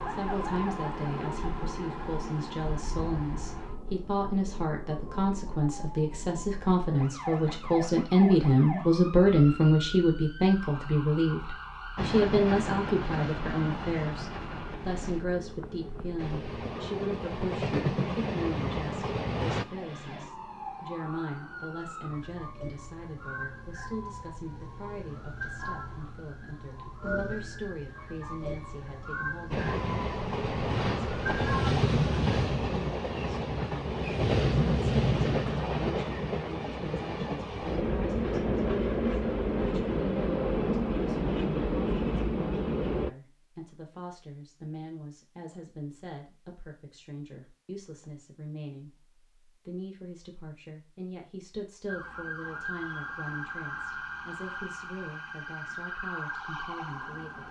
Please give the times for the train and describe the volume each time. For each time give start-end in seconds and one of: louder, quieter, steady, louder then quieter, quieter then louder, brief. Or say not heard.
11.9-19.6 quieter then louder
29.5-43.1 steady.